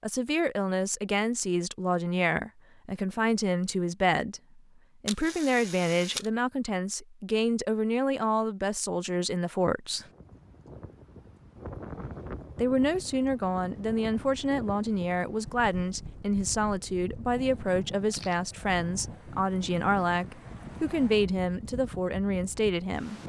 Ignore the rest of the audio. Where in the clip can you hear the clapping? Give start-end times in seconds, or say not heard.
not heard.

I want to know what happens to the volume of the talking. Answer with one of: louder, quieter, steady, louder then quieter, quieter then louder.
steady.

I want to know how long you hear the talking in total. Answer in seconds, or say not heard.
21 s.